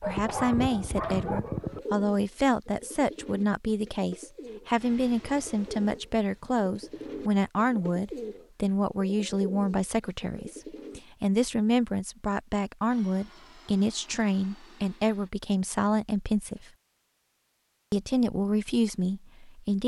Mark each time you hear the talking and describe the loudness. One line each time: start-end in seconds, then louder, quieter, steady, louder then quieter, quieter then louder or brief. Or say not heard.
0.0-16.6 steady
17.9-19.8 brief.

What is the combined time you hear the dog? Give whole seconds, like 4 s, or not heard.
2 s.